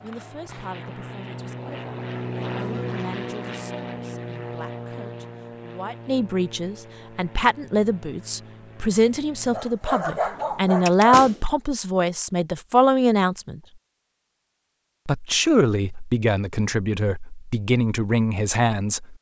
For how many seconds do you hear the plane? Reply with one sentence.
The plane can be heard for 10 seconds in total.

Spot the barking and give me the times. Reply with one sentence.
You can hear the barking from 9.5 to 11.2 s.